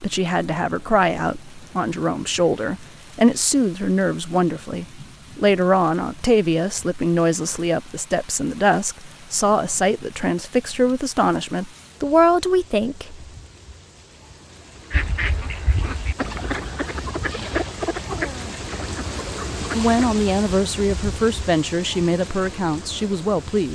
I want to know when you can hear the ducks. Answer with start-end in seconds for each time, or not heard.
14.9-19.9.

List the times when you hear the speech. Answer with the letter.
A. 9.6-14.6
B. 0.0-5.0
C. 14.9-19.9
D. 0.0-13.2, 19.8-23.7
D.